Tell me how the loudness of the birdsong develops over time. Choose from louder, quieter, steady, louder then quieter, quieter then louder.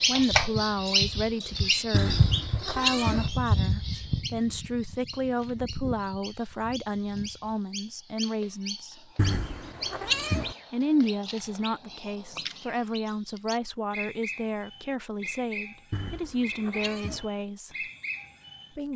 quieter.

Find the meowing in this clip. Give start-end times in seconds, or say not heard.
1.9-3.3, 9.2-10.6, 15.9-17.2.